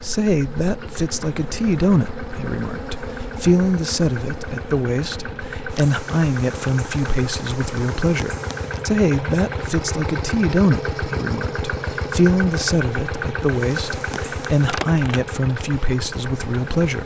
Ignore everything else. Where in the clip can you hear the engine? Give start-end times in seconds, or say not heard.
0.0-17.0.